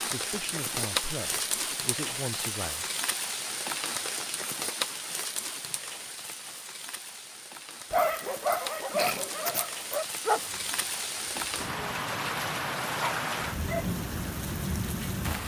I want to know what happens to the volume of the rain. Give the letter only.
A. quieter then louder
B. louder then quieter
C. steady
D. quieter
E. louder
A.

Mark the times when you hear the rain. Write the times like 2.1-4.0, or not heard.
0.0-15.4.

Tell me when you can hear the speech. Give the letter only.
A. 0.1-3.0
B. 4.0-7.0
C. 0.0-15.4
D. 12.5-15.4
A.